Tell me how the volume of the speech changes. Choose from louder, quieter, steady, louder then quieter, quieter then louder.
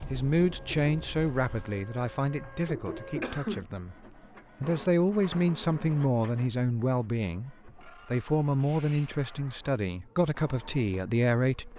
steady.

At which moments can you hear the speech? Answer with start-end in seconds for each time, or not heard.
0.0-4.0, 4.6-11.7.